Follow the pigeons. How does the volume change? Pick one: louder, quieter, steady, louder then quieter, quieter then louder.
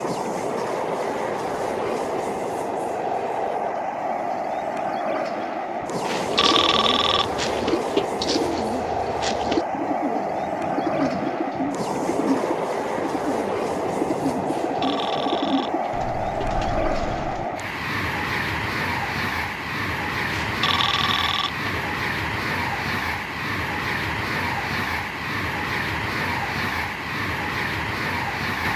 steady.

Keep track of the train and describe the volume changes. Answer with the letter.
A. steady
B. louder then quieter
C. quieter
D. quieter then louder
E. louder
A.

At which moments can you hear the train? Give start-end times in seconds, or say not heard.
0.0-28.7.